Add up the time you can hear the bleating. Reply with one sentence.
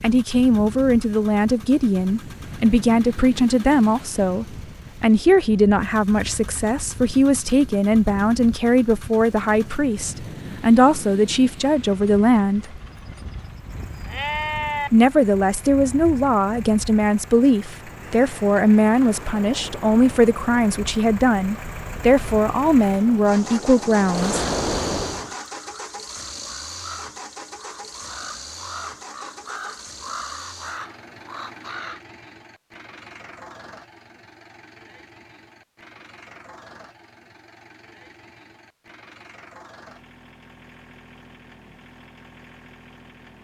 The bleating can be heard for 2 seconds in total.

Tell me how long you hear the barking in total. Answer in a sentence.
The barking can't be heard in this clip.